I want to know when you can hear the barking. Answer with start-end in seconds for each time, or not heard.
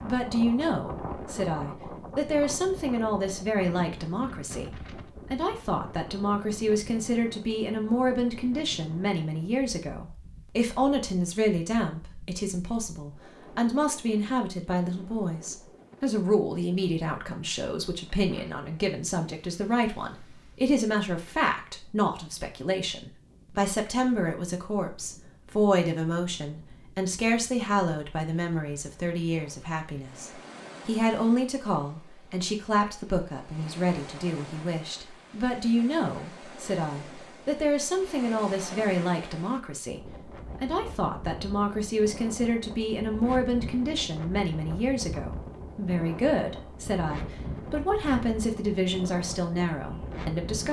not heard.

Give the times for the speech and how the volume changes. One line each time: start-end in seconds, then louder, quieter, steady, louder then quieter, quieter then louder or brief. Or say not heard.
0.0-50.6 steady.